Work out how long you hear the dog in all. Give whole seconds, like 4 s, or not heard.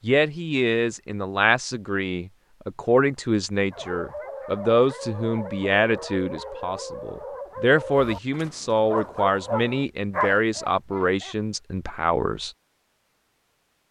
8 s.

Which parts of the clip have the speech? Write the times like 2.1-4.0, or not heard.
0.0-12.5.